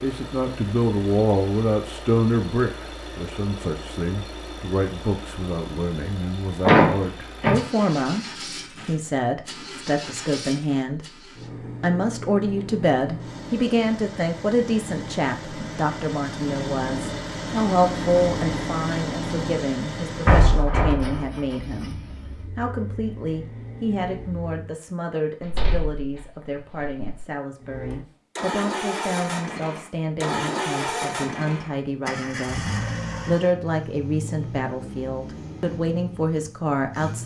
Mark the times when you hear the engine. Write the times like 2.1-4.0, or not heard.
0.0-24.8, 27.6-37.2.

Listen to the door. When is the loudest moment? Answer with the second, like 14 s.
7 s.